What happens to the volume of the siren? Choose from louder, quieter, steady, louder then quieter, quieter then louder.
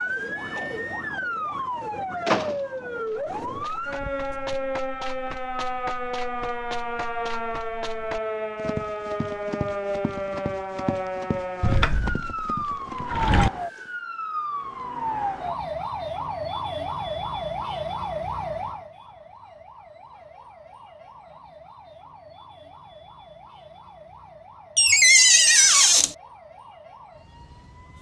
quieter.